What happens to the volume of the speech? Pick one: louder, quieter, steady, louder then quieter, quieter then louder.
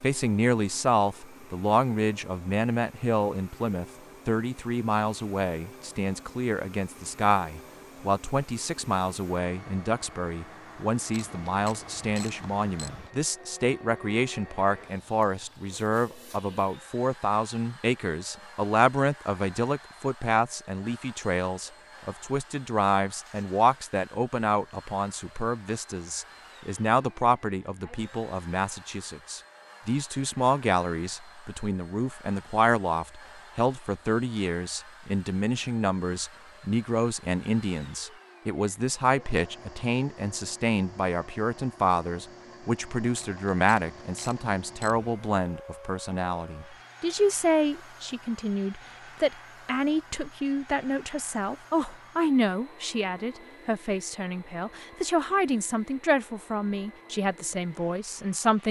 steady.